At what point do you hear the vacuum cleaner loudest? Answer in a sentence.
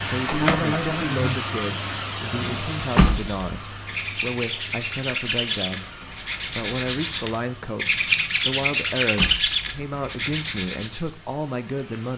The loudest moment of the vacuum cleaner is at 1 second.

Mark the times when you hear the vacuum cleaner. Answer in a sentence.
You can hear the vacuum cleaner from 0.0 to 12.1 s.